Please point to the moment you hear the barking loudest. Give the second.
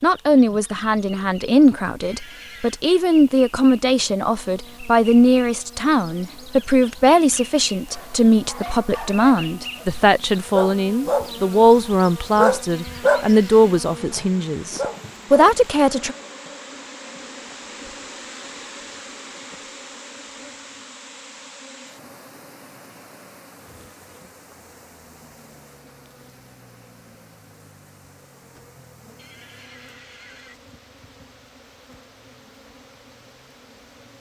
13 s.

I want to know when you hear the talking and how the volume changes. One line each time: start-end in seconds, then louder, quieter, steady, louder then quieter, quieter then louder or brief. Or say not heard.
0.0-16.1 steady.